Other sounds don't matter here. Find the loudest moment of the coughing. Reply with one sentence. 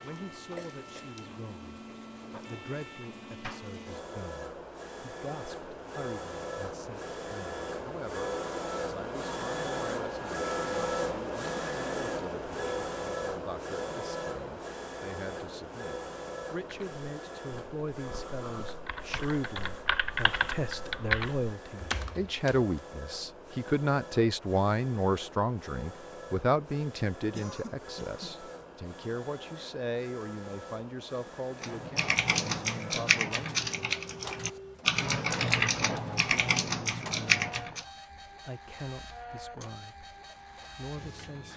The loudest moment of the coughing is at 28 seconds.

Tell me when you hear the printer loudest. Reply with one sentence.
The volume of the printer peaks at 11 seconds.